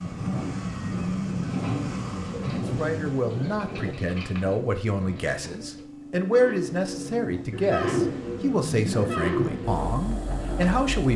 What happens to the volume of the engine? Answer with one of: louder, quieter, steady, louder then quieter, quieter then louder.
quieter then louder.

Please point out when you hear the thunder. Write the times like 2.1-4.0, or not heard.
0.0-4.0.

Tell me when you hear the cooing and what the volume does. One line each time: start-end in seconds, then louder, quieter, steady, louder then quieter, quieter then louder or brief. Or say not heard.
1.4-10.8 louder.